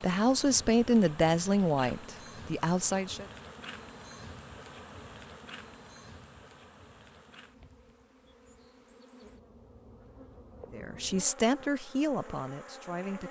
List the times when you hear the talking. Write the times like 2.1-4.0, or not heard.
0.0-3.2, 10.7-13.2.